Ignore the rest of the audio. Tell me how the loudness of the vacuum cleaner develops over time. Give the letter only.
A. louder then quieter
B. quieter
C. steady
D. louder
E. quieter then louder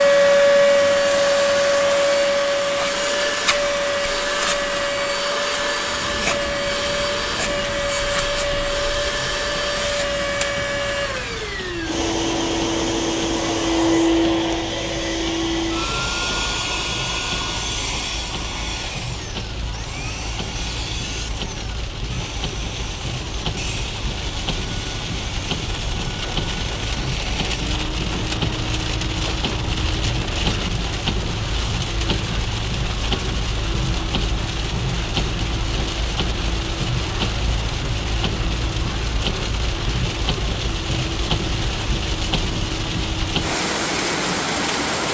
B.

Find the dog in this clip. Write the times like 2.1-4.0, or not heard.
not heard.